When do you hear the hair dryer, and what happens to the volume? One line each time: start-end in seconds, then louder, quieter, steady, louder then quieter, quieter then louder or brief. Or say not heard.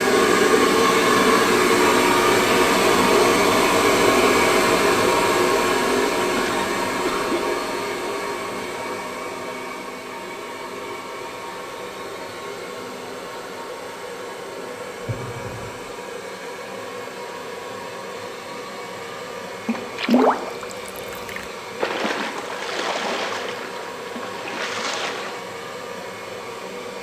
0.0-26.9 quieter.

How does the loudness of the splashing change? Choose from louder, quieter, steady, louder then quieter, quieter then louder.
quieter.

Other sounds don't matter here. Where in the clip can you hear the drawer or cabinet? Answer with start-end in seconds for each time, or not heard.
14.9-15.9.